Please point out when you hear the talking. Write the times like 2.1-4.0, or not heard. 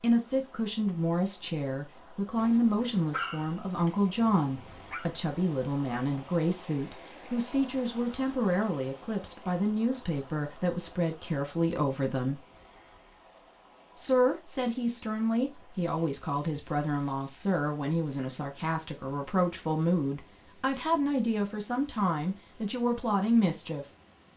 0.0-12.4, 13.9-23.9.